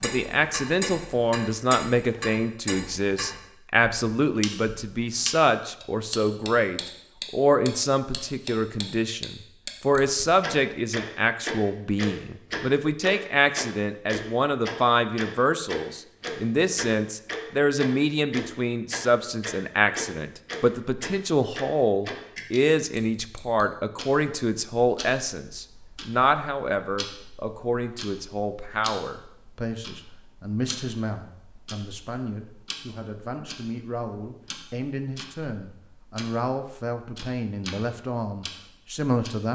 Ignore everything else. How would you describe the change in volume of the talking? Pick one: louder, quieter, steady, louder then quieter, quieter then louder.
quieter.